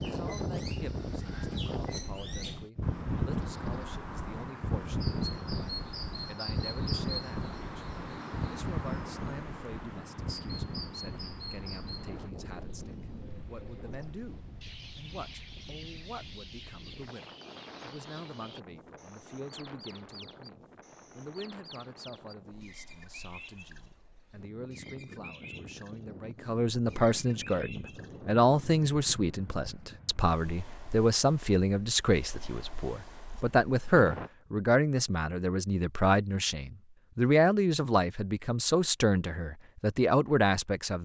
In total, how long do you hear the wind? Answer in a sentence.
The wind can be heard for 34 seconds in total.